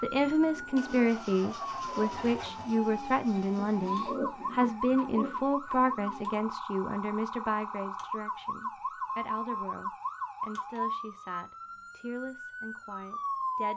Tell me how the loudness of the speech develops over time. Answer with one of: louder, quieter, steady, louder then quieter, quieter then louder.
quieter.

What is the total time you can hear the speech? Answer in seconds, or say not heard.
14 s.